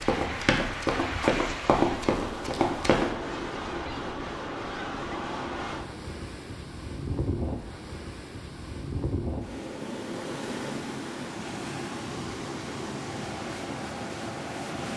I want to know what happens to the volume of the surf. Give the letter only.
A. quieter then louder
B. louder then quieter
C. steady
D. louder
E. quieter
C.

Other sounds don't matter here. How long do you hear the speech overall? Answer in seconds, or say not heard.
not heard.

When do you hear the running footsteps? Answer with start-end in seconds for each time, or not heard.
0.0-3.0.